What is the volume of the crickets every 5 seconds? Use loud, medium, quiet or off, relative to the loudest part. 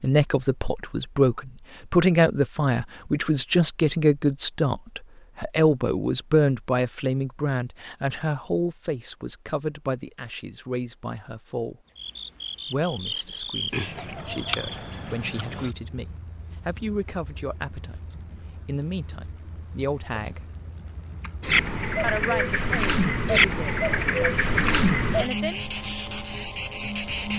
off, off, medium, quiet, loud, loud.